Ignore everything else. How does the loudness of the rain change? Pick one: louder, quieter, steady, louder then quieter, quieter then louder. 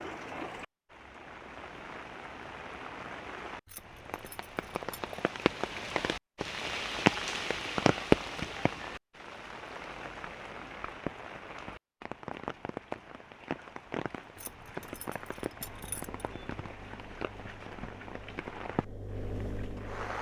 louder then quieter.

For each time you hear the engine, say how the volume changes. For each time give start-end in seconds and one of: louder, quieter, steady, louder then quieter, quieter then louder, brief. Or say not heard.
15.6-20.1 louder.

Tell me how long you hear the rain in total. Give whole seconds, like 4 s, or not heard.
20 s.